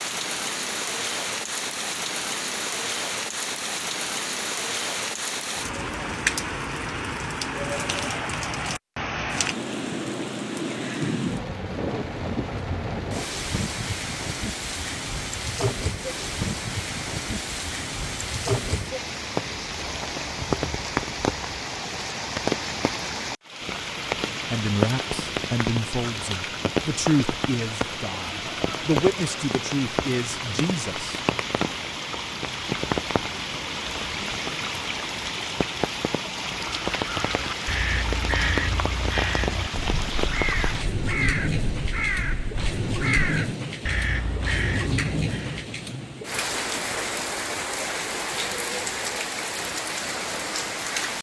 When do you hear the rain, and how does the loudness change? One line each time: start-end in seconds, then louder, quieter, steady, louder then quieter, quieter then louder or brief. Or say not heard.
0.0-51.1 steady.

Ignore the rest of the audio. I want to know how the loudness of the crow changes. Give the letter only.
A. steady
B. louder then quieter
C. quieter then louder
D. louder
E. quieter
A.